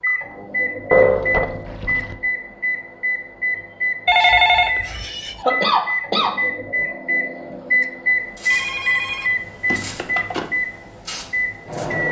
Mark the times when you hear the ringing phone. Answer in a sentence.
The ringing phone can be heard from 0.9 to 2.1 s, from 4.0 to 5.3 s and from 8.5 to 10.5 s.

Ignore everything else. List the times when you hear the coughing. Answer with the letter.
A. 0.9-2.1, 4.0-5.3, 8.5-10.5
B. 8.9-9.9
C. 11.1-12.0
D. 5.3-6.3
D.